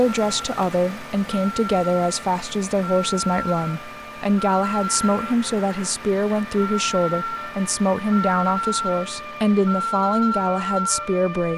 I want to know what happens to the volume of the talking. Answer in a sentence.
The volume of the talking stays about the same.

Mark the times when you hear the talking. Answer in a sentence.
You can hear the talking from 0.0 to 11.5 s.